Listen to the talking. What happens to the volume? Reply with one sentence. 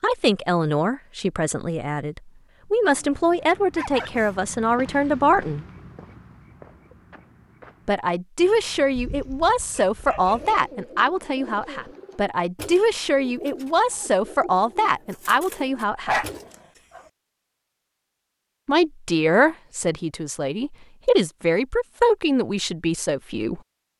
The volume of the talking stays about the same.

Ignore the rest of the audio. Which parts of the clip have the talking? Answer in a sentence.
You can hear the talking from 0.0 to 5.7 s, from 7.8 to 16.2 s and from 18.6 to 23.6 s.